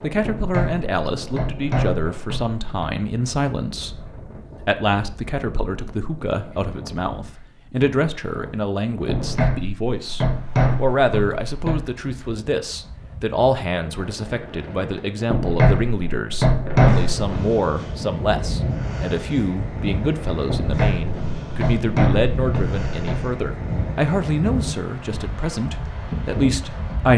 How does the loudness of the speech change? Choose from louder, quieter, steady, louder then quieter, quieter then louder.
steady.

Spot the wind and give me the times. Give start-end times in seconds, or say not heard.
0.0-27.1.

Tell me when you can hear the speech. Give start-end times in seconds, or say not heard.
0.0-27.1.